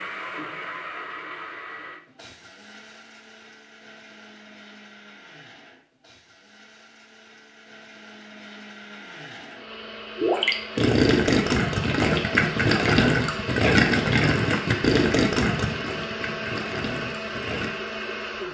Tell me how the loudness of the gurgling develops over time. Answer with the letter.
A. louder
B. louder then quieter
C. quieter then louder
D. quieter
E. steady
D.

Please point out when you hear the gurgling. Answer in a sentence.
You can hear the gurgling from 10.2 to 17.7 s.